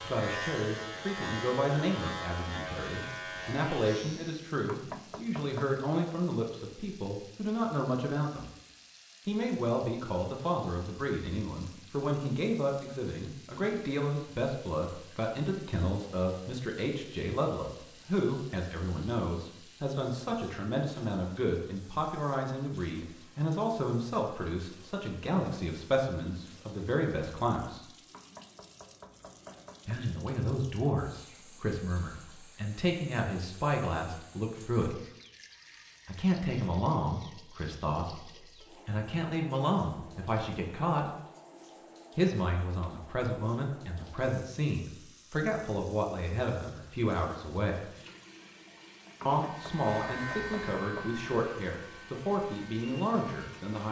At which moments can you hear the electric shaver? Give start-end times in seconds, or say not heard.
0.0-4.5, 49.4-53.8.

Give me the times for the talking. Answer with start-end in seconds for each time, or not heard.
0.0-8.5, 9.2-27.9, 29.9-35.0, 36.0-41.1, 42.1-47.9, 49.2-53.8.